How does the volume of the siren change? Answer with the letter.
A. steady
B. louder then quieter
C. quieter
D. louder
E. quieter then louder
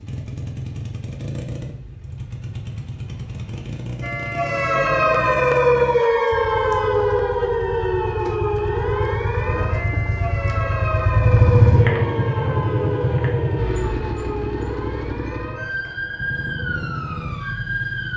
C.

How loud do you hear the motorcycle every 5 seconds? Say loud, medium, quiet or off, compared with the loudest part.
medium, medium, loud, medium.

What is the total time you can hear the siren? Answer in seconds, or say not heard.
14 s.